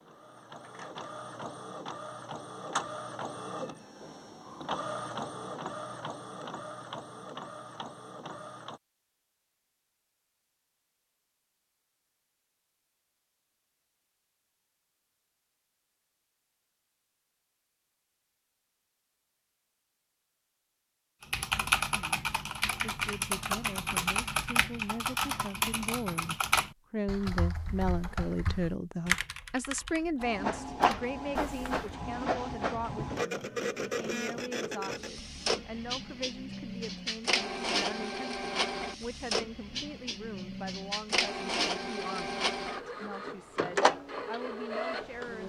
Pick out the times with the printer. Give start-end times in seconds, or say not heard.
0.0-8.8, 30.2-45.4.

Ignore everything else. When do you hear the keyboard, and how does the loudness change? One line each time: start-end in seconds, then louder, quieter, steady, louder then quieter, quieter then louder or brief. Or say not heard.
21.2-31.8 quieter.